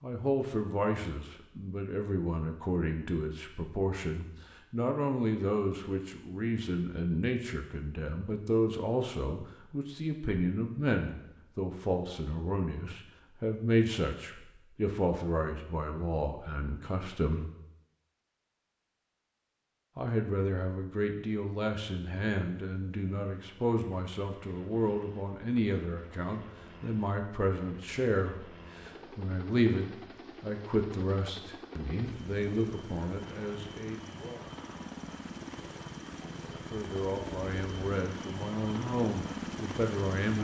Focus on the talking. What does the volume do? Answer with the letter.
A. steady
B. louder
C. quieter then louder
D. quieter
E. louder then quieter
A.